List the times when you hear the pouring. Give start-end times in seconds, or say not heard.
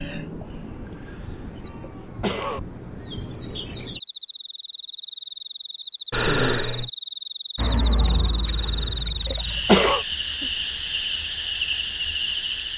7.5-9.9.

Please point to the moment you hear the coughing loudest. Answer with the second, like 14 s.
10 s.